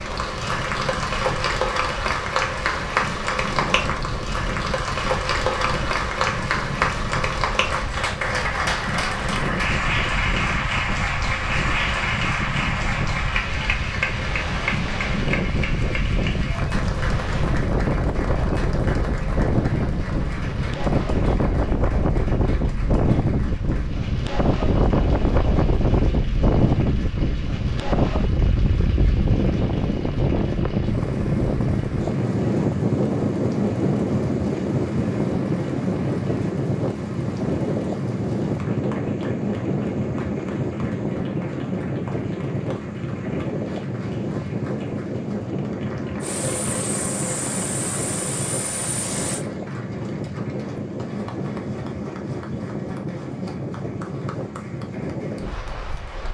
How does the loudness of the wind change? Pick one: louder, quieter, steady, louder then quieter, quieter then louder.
louder then quieter.